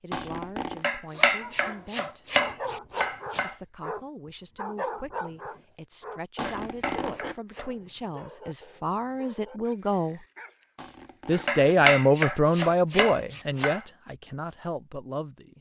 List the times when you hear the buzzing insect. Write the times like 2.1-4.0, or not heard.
not heard.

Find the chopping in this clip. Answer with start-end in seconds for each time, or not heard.
0.8-3.5, 6.4-7.7, 11.4-13.8.